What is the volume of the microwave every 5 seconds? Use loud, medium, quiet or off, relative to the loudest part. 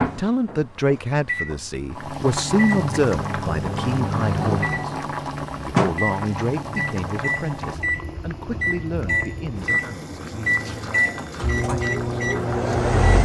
medium, loud, loud.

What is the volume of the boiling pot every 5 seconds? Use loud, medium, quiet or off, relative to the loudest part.
loud, loud, medium.